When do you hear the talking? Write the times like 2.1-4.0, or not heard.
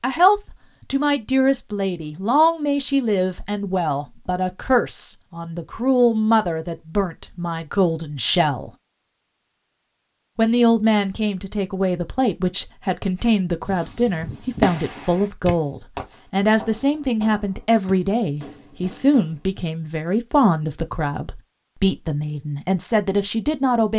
0.0-8.7, 10.3-23.9.